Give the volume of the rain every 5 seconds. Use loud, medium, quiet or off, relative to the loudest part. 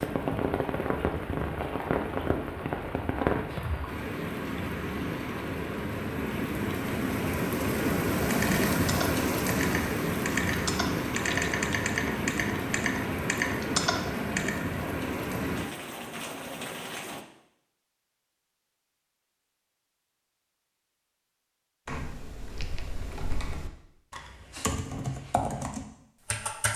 loud, loud, loud, medium, off, off.